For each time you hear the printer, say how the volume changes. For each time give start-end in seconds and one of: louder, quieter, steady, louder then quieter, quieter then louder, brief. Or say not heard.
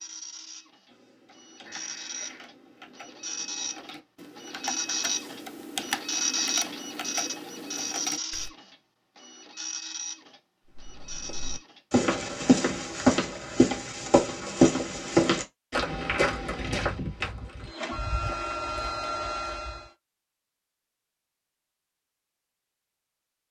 0.0-11.8 louder then quieter
17.6-19.9 brief.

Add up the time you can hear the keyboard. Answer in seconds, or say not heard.
8 s.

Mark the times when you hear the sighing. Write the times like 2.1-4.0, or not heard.
1.6-2.5.